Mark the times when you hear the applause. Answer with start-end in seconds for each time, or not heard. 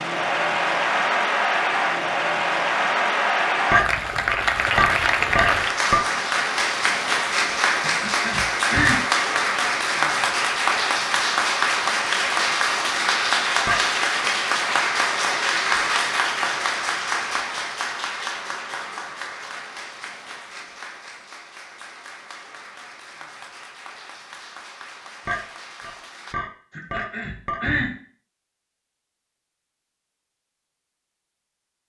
0.0-26.4.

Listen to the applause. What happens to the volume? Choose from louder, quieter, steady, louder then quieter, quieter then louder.
quieter.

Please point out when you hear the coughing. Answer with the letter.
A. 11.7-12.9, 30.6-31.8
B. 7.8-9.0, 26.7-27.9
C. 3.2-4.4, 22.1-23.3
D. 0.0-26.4
B.